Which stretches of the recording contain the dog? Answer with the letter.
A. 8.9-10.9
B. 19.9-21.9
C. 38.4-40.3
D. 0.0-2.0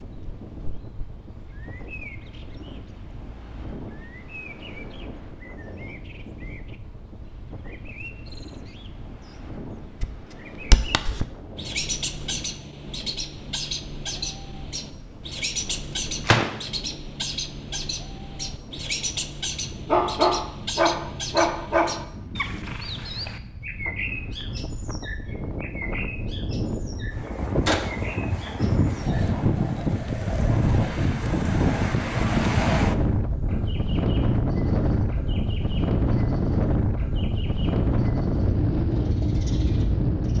B.